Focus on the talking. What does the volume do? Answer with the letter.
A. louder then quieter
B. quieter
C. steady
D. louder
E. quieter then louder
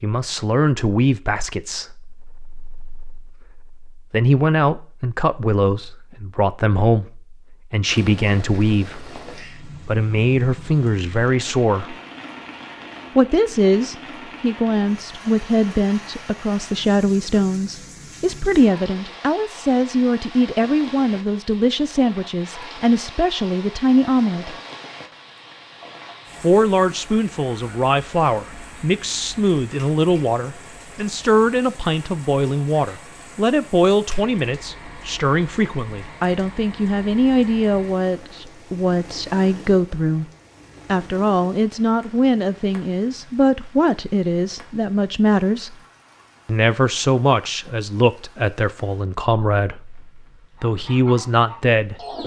C.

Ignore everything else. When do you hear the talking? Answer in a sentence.
You can hear the talking from 0.0 to 11.9 s, from 13.2 to 24.6 s, from 26.4 to 40.2 s, from 40.9 to 45.8 s and from 46.5 to 52.0 s.